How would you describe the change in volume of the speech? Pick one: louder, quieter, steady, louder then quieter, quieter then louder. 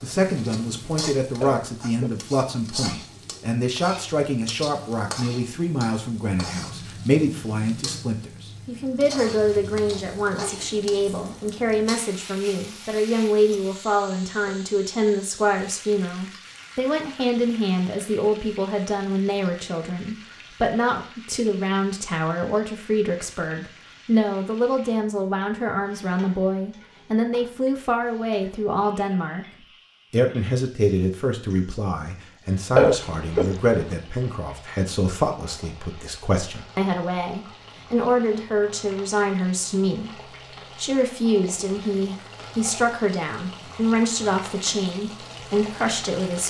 steady.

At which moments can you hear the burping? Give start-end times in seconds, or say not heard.
1.4-2.1, 32.8-34.0.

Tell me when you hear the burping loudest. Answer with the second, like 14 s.
33 s.